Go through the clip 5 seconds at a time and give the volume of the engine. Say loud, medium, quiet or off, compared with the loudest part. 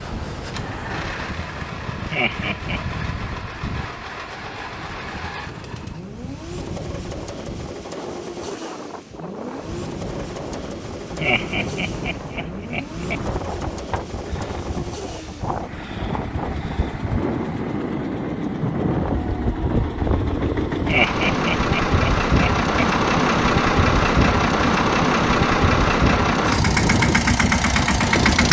quiet, quiet, quiet, quiet, loud, loud.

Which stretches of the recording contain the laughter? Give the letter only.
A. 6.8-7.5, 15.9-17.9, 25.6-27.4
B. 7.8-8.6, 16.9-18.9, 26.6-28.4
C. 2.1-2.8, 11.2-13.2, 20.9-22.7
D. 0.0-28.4
C.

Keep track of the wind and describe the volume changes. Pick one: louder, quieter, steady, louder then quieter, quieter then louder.
louder.